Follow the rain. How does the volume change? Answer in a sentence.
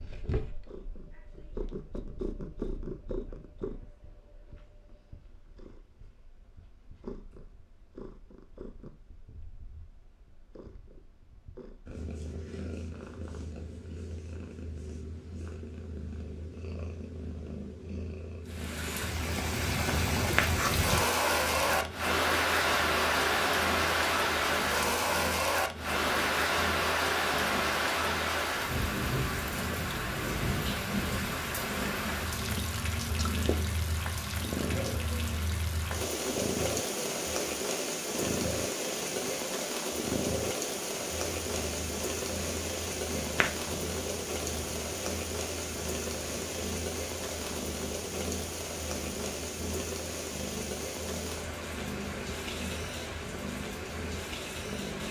The volume of the rain goes down.